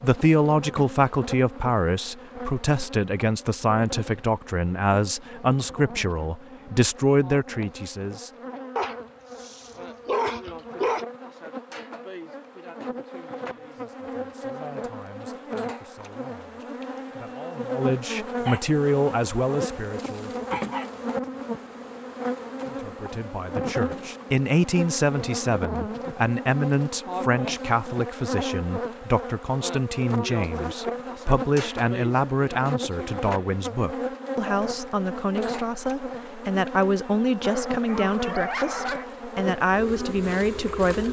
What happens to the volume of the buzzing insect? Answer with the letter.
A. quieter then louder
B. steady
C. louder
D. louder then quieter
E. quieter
C.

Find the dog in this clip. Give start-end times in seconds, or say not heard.
8.8-11.1, 18.4-20.9, 37.4-39.0.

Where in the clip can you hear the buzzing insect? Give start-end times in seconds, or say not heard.
0.0-41.0.